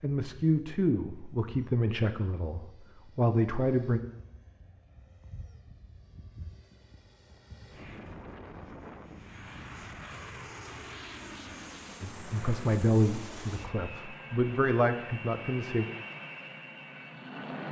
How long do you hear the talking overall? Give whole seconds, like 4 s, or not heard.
8 s.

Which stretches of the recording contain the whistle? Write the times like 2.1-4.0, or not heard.
not heard.